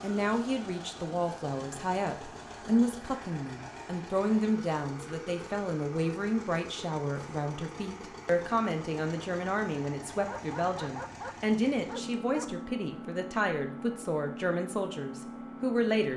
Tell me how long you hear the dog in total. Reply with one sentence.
You can hear the dog for 2 seconds altogether.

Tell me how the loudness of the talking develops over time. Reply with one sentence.
The volume of the talking stays about the same.